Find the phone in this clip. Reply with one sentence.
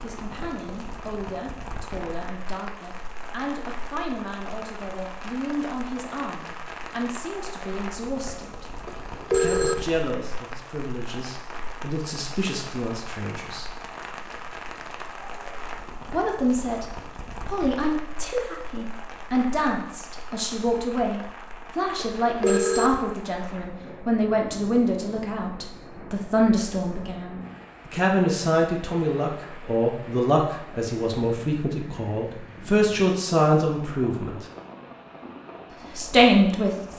You can hear the phone from 8.8 to 9.8 s and from 21.9 to 22.9 s.